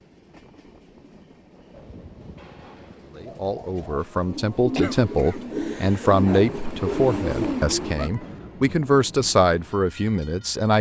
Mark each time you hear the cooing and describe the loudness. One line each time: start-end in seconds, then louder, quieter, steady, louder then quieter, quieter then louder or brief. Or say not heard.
1.7-8.1 louder.